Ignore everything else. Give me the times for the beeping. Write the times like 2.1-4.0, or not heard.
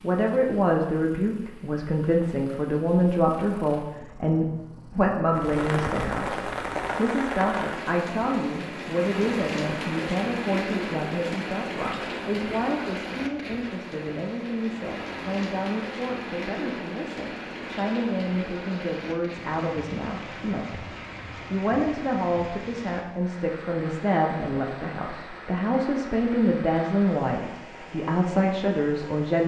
not heard.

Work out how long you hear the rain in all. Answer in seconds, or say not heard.
24 s.